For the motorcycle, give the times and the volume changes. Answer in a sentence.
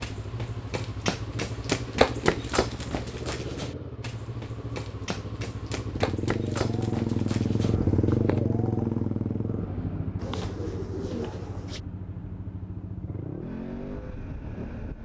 The motorcycle can be heard from 0.0 to 14.9 s, getting louder then quieter.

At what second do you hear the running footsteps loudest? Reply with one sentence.
The volume of the running footsteps peaks at 2 seconds.